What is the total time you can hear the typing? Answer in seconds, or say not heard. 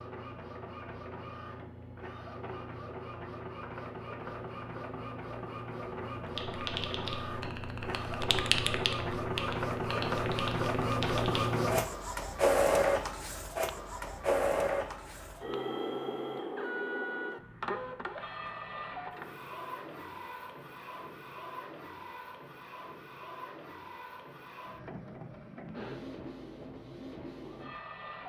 5 s.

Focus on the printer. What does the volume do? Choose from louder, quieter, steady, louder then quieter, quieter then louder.
louder then quieter.